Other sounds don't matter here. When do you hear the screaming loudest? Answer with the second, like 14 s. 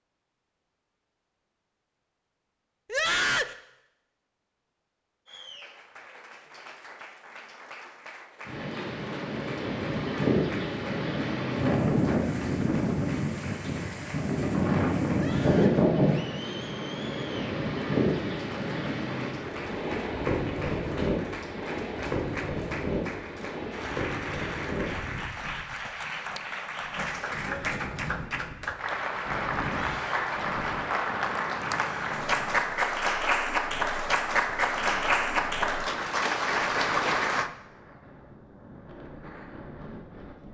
3 s.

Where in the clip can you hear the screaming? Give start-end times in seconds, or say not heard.
2.9-3.5, 15.1-15.8, 29.6-30.3.